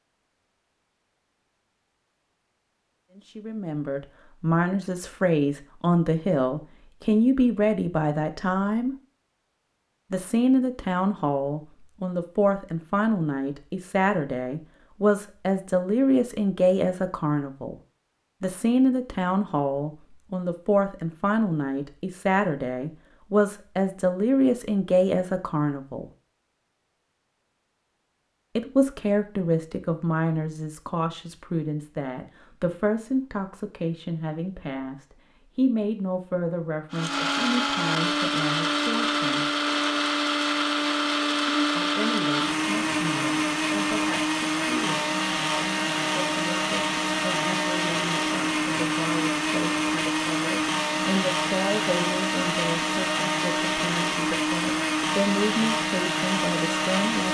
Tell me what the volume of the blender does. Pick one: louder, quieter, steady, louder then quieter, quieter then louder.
steady.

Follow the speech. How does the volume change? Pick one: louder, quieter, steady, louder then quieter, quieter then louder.
quieter.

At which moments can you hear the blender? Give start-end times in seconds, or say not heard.
36.9-57.2.